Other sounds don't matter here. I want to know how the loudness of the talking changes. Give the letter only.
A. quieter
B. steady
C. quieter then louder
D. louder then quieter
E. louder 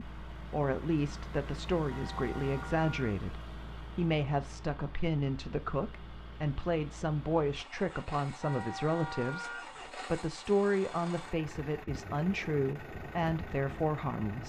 B.